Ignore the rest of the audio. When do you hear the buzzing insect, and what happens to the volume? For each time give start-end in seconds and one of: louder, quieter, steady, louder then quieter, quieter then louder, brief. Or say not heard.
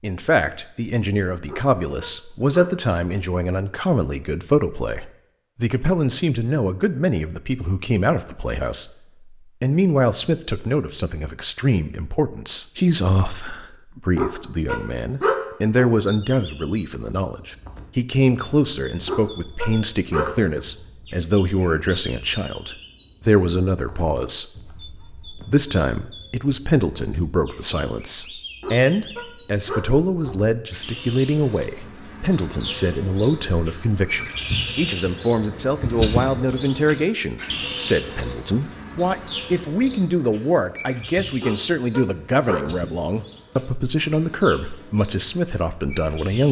not heard.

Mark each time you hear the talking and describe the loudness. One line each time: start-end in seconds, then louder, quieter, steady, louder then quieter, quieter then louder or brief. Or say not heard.
0.0-8.9 steady
9.6-46.4 steady.